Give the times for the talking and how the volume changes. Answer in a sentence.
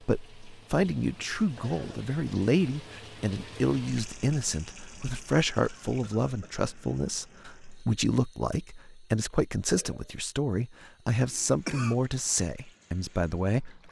You can hear the talking from 0.0 to 13.8 s, at a steady volume.